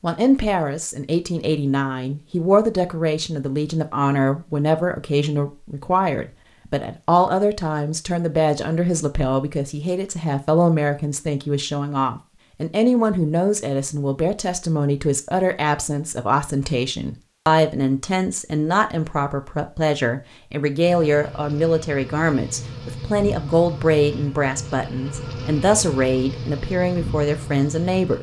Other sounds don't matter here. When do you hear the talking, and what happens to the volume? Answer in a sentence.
The talking can be heard from 0.0 to 28.1 s, at a steady volume.